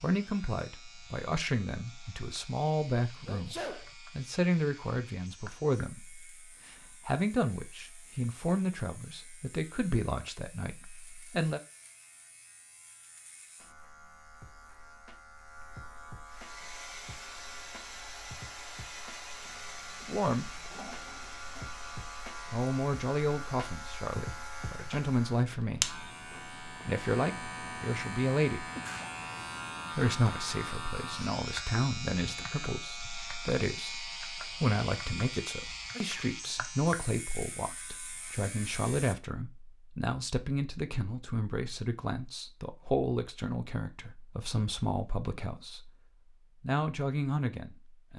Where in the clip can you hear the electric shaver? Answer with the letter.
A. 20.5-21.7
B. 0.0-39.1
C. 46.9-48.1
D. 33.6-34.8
B.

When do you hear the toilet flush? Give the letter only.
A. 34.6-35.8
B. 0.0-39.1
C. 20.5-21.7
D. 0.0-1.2
C.